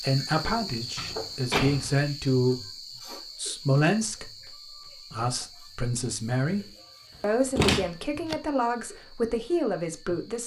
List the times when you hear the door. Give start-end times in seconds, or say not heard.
0.4-2.0, 7.5-8.3.